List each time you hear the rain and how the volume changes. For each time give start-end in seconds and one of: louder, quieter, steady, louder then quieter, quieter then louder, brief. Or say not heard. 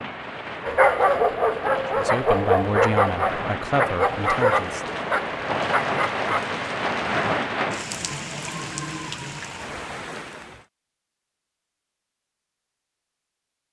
0.0-10.7 louder then quieter.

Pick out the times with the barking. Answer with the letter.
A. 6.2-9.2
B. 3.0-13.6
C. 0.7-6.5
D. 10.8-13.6
C.